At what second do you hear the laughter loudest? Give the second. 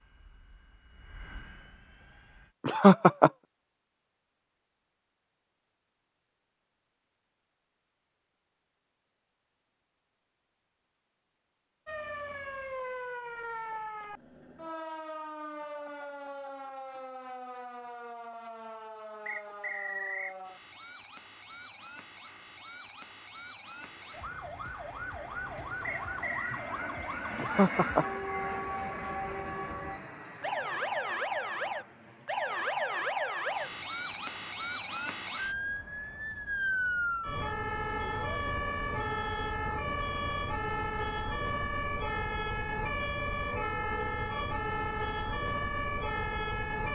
3 s.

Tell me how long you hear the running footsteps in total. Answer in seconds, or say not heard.
not heard.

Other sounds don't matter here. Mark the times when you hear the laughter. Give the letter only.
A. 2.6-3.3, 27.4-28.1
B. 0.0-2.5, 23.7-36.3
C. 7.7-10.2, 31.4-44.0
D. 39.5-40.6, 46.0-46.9
A.